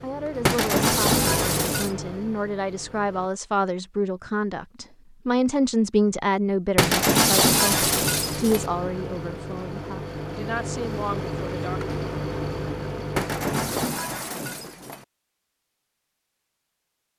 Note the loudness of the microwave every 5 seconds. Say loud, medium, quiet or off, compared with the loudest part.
loud, loud, loud, off.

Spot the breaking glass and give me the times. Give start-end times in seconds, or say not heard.
0.5-1.9, 6.8-8.7, 13.2-15.1.